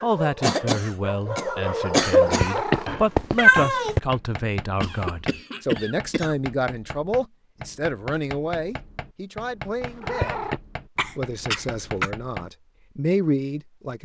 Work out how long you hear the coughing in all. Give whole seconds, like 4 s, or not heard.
5 s.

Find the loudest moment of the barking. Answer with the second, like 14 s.
2 s.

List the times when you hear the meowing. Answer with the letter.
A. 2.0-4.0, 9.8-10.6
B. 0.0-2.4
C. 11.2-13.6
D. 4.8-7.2
A.